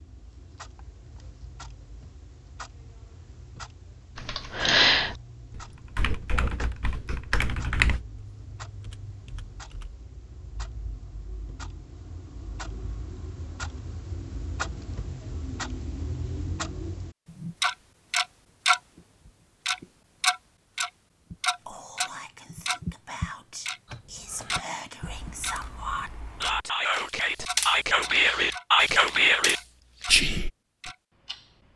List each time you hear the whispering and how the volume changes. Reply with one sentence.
You can hear the whispering from 21.6 to 30.5 s, getting louder.